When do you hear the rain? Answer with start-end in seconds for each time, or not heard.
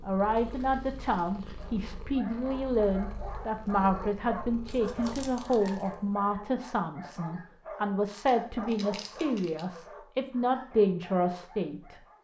not heard.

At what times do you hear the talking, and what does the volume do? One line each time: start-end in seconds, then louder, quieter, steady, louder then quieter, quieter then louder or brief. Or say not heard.
0.0-12.0 steady.